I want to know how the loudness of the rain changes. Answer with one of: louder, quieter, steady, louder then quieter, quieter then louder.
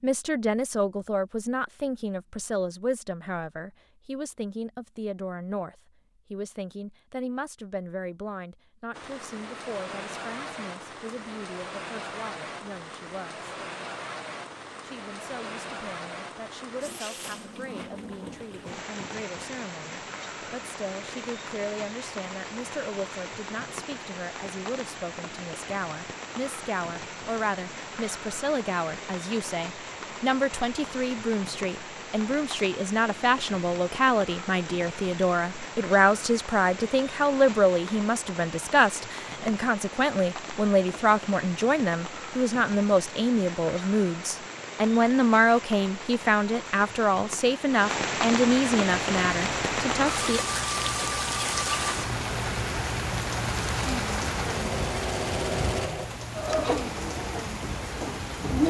louder.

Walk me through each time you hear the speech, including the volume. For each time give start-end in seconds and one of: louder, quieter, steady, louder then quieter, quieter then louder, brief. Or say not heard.
0.0-13.5 quieter
14.8-50.4 louder.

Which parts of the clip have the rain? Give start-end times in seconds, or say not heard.
8.9-58.6.